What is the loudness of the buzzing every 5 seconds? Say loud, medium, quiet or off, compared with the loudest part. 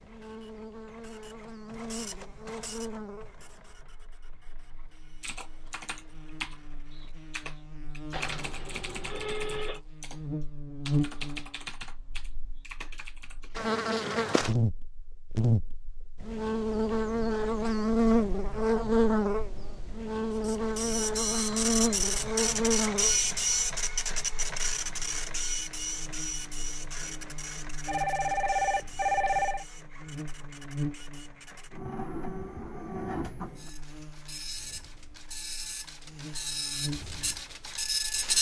quiet, quiet, medium, loud, loud, quiet, quiet, quiet.